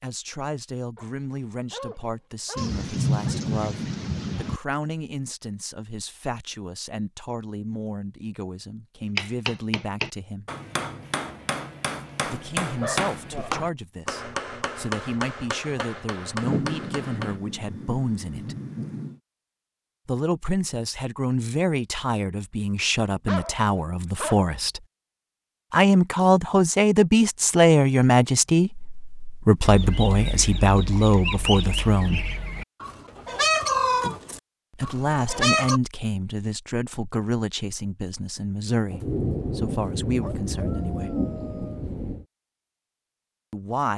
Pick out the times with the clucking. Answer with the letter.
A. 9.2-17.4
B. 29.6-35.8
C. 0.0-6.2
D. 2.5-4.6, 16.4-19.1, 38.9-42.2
B.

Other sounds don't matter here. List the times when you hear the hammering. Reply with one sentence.
You can hear the hammering from 9.2 to 17.4 s.